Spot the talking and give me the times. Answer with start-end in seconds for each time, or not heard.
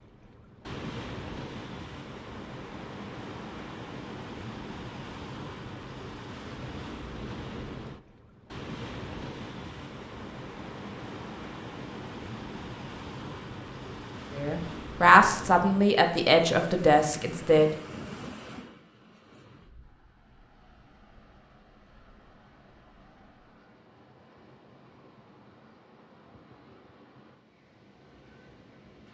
14.3-17.7.